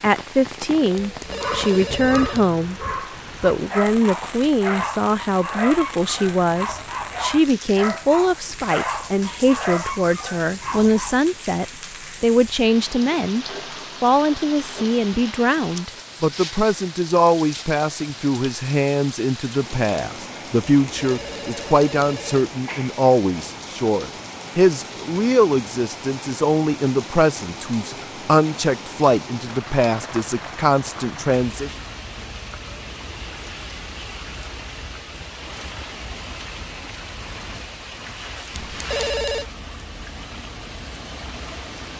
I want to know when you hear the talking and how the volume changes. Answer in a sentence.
The talking can be heard briefly from 0.0 to 2.8 s; and from 3.4 to 31.7 s, at a steady volume.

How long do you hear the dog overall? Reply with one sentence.
The dog can be heard for 10 seconds in total.